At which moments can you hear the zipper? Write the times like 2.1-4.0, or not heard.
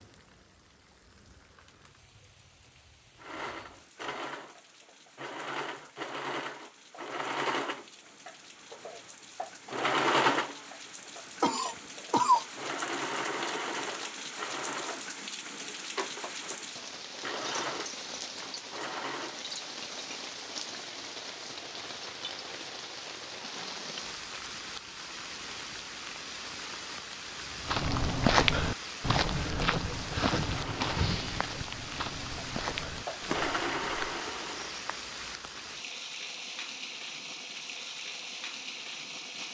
not heard.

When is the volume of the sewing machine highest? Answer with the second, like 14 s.
10 s.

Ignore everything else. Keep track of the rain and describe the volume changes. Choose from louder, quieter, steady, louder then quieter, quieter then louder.
louder.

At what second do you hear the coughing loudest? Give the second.
12 s.